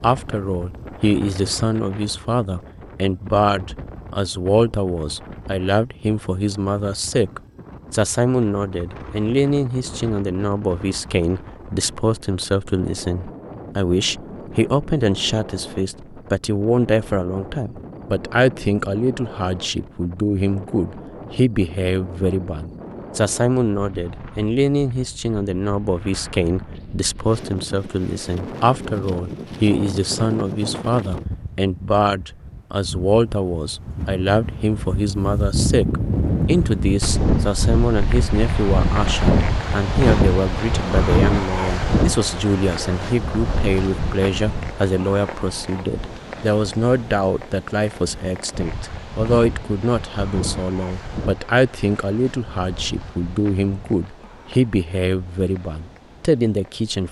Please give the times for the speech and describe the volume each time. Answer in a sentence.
The speech can be heard from 0.0 to 57.0 s, at a steady volume.